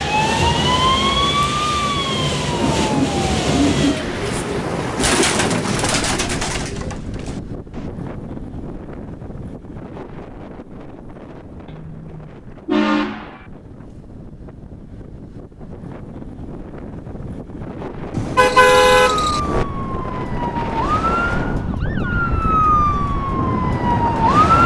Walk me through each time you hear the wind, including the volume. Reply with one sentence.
The wind can be heard from 0.0 to 24.6 s, getting quieter then louder.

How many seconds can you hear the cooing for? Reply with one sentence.
You can hear the cooing for 5 seconds altogether.